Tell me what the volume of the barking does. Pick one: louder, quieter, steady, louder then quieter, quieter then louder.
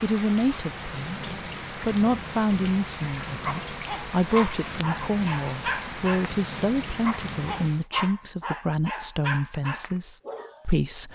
steady.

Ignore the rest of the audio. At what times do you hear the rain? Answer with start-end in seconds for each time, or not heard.
0.0-7.8.